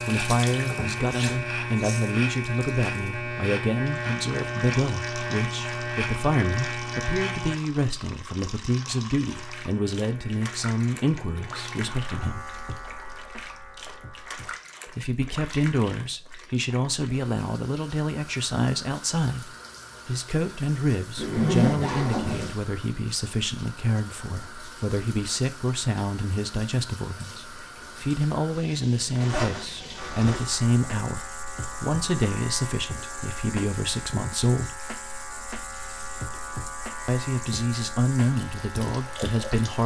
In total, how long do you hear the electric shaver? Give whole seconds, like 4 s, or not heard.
23 s.